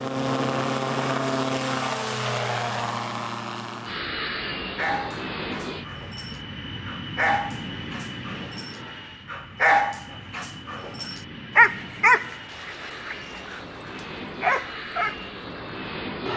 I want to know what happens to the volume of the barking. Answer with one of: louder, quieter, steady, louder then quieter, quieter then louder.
louder then quieter.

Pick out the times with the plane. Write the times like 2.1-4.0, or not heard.
0.0-16.3.